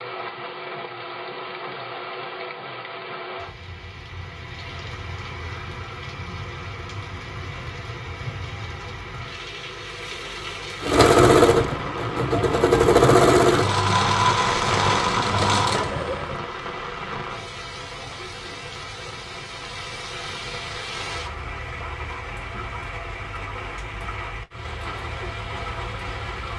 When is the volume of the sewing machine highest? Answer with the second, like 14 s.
13 s.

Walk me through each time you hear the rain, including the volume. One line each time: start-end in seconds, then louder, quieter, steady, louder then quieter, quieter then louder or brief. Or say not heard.
0.0-26.5 louder then quieter.